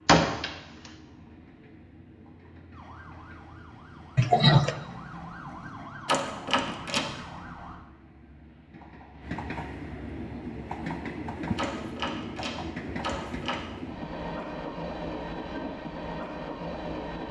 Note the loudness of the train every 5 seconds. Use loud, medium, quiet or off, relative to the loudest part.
quiet, medium, loud, loud.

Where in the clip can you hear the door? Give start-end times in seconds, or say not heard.
0.1-0.9, 6.0-7.2, 11.6-13.6.